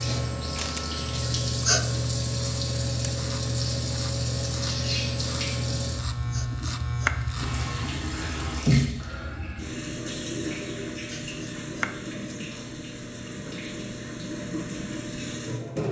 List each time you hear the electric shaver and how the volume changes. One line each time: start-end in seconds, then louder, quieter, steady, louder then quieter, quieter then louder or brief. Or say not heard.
0.0-7.9 steady.